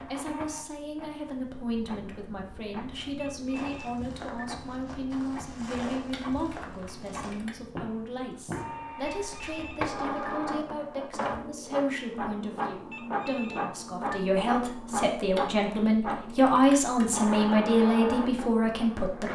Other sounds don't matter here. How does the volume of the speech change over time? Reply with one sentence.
The loudness of the speech goes up.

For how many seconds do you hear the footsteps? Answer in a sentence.
The footsteps can be heard for 7 seconds in total.